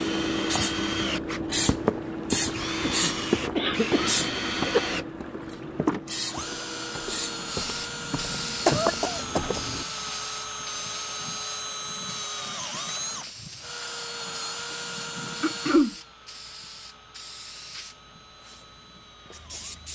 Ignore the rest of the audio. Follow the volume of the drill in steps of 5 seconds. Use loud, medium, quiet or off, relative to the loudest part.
loud, loud, loud, medium.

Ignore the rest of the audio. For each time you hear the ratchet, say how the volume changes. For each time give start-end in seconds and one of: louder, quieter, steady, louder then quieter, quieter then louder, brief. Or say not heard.
not heard.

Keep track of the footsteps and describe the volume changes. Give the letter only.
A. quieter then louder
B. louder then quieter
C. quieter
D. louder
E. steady
A.